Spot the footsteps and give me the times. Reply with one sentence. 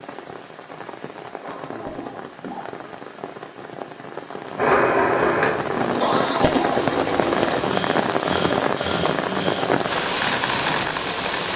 You can't hear the footsteps here.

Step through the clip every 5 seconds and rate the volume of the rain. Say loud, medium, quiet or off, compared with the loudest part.
quiet, loud, loud.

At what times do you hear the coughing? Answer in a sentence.
You can hear the coughing from 1.4 to 2.8 s and from 6.0 to 6.8 s.